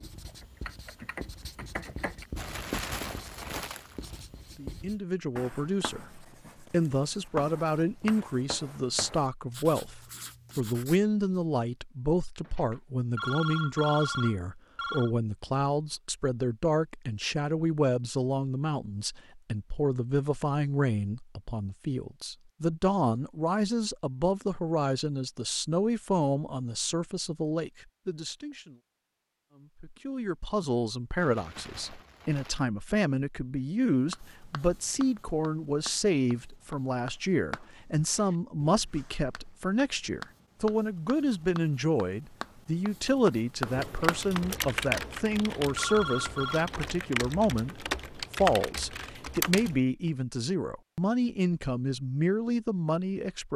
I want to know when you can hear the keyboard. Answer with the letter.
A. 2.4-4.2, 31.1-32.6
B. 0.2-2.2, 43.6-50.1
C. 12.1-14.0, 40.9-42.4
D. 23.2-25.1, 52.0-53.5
B.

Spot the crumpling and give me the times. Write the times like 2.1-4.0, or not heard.
2.4-4.2, 31.1-32.6.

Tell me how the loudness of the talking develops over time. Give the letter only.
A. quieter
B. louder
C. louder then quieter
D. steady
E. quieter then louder
D.